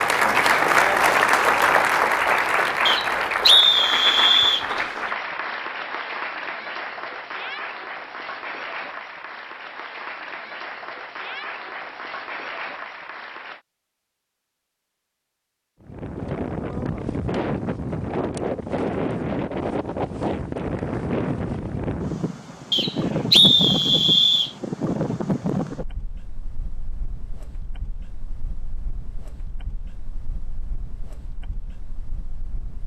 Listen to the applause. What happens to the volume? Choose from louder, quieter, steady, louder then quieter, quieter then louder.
quieter.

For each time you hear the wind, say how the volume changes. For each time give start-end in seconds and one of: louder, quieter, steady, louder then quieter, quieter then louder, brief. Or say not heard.
15.8-32.8 quieter.